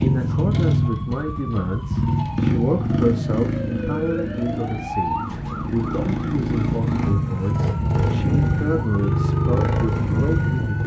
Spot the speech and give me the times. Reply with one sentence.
The speech can be heard from 0.0 to 10.8 s.